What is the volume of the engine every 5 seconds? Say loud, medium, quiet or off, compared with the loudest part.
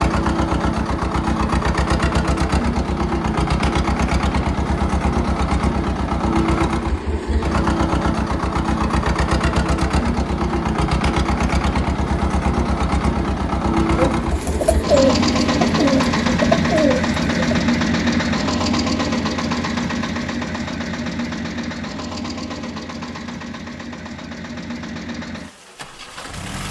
loud, loud, loud, loud, medium, quiet.